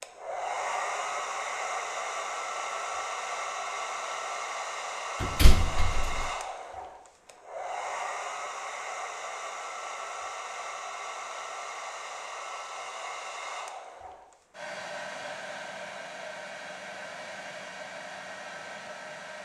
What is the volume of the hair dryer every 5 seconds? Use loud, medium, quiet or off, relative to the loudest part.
loud, loud, medium, medium.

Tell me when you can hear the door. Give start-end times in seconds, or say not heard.
5.2-6.3.